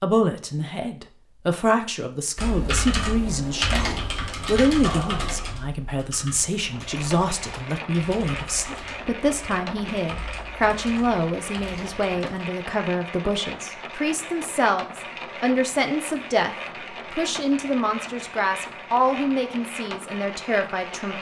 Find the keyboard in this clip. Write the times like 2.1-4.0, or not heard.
2.4-12.4.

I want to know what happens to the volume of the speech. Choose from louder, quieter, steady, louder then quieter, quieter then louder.
steady.